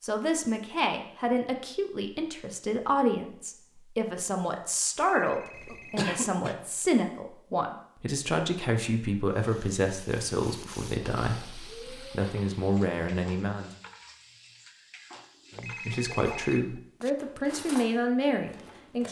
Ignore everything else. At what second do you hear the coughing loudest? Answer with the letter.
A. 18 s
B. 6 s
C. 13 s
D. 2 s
B.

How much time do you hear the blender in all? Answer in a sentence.
The blender can't be heard in this clip.